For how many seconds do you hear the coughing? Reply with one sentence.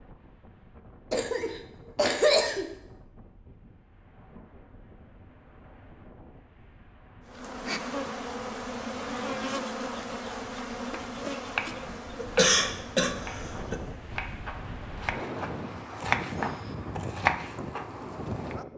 You can hear the coughing for 3 seconds altogether.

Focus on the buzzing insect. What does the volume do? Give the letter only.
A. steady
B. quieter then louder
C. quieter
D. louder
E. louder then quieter
C.